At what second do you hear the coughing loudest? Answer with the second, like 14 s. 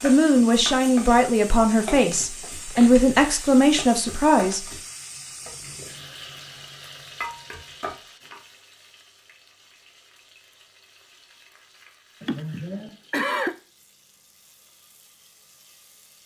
13 s.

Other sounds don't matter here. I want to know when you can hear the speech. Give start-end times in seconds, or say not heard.
0.0-4.7.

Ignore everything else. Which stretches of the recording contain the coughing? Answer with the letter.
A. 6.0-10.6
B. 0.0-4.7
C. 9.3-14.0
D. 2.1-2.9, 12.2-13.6
D.